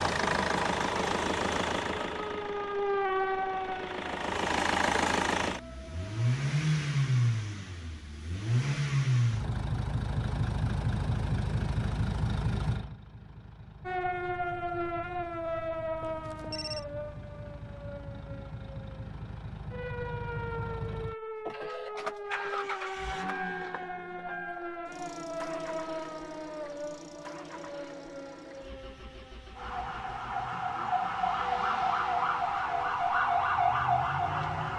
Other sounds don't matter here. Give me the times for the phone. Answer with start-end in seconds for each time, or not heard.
15.9-16.9.